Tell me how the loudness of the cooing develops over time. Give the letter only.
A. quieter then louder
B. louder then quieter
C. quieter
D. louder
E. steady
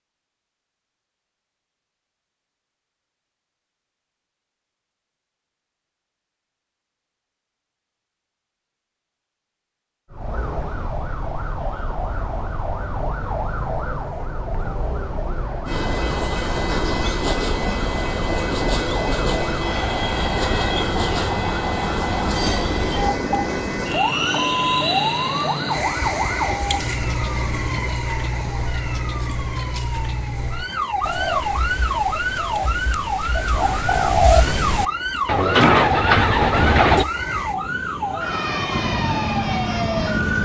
D.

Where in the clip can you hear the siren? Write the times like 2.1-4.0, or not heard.
10.1-40.4.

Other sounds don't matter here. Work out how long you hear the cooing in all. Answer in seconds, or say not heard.
6 s.